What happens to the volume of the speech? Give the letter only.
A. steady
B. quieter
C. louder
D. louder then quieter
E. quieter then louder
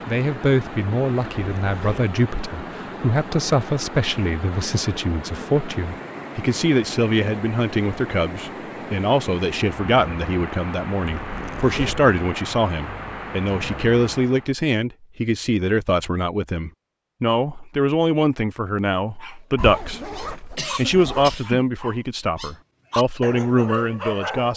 A.